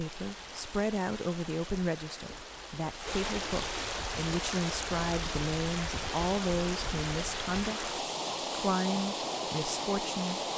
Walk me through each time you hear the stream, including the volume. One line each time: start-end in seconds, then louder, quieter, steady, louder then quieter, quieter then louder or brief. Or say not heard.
0.0-10.5 louder.